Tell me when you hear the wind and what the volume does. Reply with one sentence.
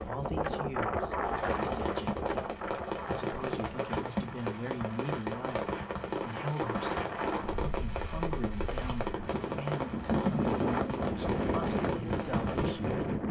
The wind can be heard from 0.0 to 13.2 s, getting quieter then louder.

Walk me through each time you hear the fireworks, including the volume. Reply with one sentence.
The fireworks can be heard from 1.1 to 13.2 s, at a steady volume.